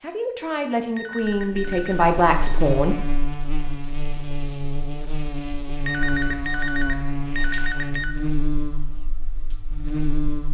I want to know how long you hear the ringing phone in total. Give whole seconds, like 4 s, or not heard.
4 s.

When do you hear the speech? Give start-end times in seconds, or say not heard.
0.0-3.2.